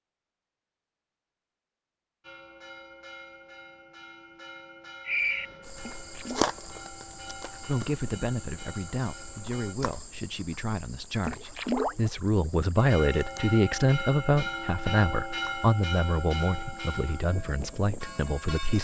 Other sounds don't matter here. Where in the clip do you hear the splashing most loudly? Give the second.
12 s.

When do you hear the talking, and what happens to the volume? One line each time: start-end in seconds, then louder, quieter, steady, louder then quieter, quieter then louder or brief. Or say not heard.
7.7-18.7 louder then quieter.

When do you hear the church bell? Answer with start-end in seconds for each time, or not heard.
2.2-9.8, 12.8-18.7.